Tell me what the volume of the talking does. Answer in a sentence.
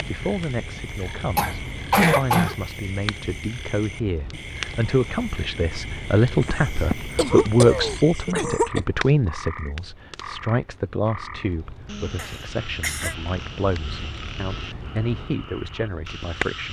The volume of the talking goes up, then down.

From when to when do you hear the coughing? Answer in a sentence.
You can hear the coughing from 1.4 to 2.5 s, from 6.4 to 8.8 s and from 12.2 to 13.2 s.